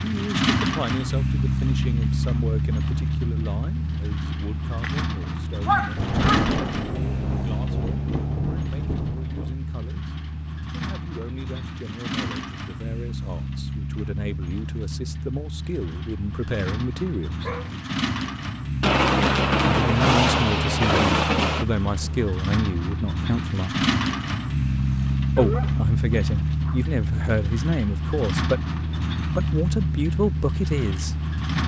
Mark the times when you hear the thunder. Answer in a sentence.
The thunder can be heard from 6.0 to 9.6 s and from 18.8 to 22.2 s.